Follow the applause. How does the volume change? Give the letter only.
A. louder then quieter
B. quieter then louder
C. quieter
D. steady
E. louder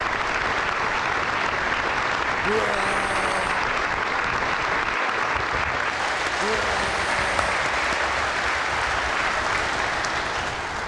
D.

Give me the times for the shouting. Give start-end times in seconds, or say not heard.
2.4-3.6, 6.3-7.7.